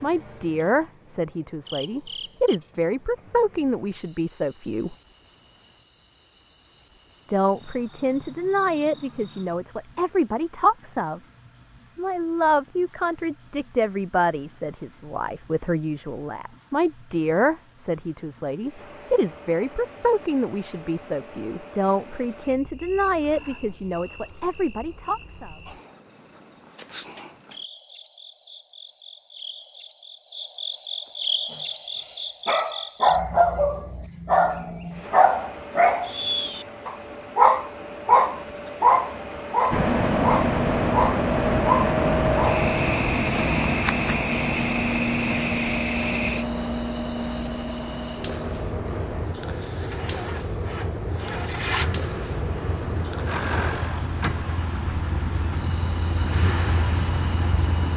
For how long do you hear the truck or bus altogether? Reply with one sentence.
You can hear the truck or bus for 18 seconds altogether.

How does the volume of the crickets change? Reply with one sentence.
The volume of the crickets goes up.